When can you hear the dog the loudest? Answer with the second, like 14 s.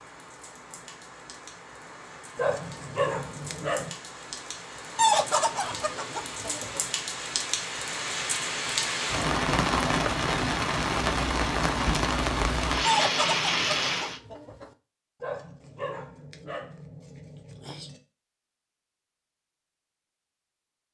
3 s.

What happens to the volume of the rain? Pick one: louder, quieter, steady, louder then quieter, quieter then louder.
louder.